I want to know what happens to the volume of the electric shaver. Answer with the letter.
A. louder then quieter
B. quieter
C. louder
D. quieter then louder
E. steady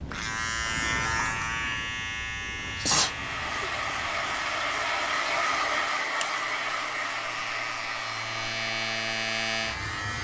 D.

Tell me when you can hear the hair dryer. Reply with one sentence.
You can hear the hair dryer from 3.0 to 10.1 s.